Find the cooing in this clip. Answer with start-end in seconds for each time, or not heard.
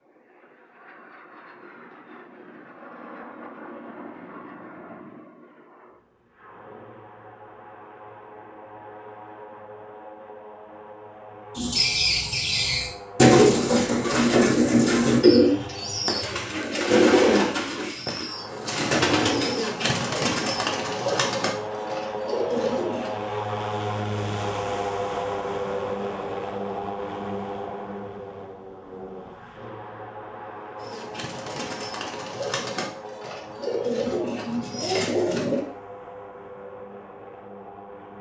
11.6-23.1, 30.8-35.6.